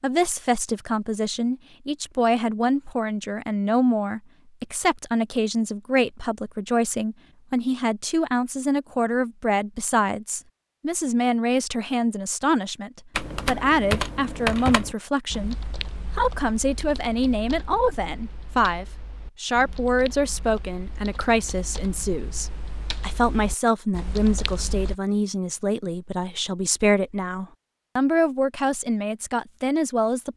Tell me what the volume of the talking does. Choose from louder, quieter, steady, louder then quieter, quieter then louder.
steady.